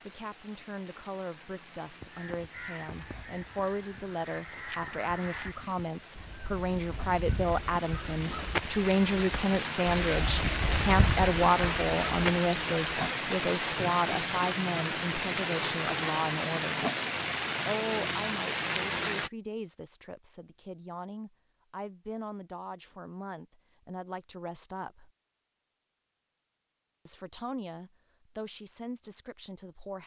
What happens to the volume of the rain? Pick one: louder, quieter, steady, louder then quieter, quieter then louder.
louder.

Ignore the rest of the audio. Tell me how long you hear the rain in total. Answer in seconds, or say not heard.
19 s.